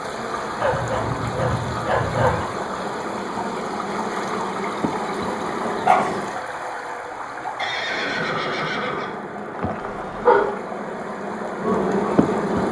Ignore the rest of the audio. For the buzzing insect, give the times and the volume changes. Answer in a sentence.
You can hear the buzzing insect from 0.0 to 6.4 s, getting louder; and from 7.8 to 12.6 s, getting louder.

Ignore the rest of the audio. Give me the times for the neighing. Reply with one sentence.
The neighing can be heard from 7.5 to 9.2 s.